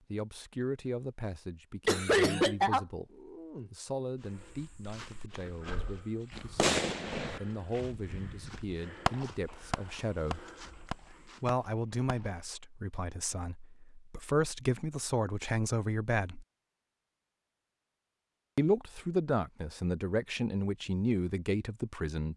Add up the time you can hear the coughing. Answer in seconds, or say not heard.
2 s.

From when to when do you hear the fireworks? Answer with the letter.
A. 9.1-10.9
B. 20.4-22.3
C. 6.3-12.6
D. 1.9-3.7
C.